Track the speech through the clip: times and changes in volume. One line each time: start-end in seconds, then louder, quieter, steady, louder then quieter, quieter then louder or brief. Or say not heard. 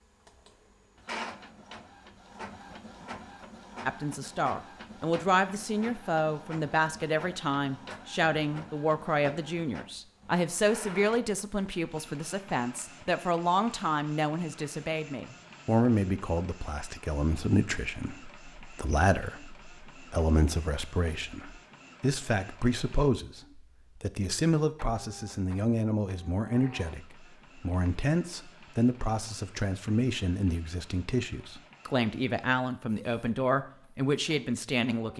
3.9-35.1 steady.